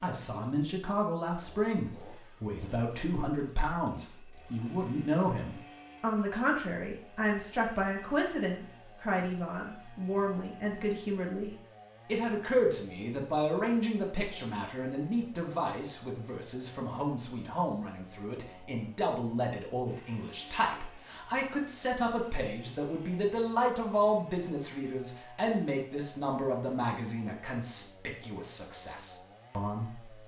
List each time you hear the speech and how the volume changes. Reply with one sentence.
You can hear the speech from 0.0 to 30.2 s, at a steady volume.